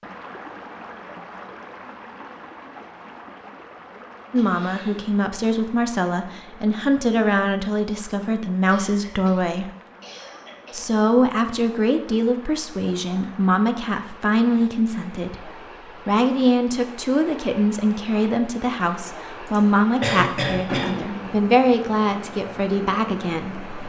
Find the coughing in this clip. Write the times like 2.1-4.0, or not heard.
4.3-5.1, 8.7-10.9, 19.4-21.4.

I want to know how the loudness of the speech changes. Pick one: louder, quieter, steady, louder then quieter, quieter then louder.
steady.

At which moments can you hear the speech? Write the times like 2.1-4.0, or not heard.
4.3-9.7, 10.7-23.8.